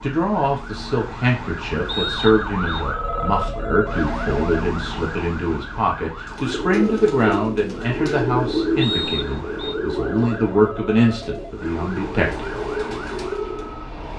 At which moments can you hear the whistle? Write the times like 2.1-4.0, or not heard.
1.9-2.9, 8.8-9.8.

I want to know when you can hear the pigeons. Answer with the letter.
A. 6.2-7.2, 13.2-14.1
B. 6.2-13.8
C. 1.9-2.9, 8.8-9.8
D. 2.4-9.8
B.